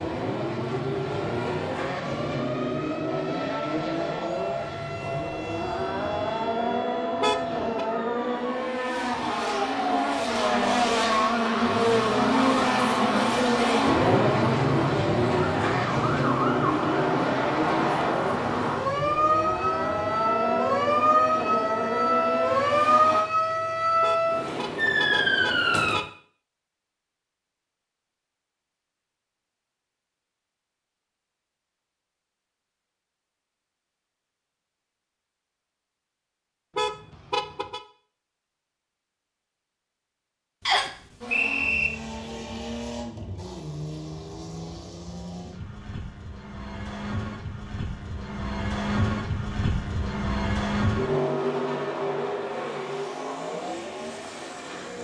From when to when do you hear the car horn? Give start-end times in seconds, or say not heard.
7.2-7.8, 24.0-26.1, 36.8-37.8.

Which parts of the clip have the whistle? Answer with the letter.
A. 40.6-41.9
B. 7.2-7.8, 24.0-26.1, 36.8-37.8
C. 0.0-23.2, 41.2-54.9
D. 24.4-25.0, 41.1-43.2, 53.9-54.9
A.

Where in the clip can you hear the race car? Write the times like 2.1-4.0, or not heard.
0.0-23.2, 41.2-54.9.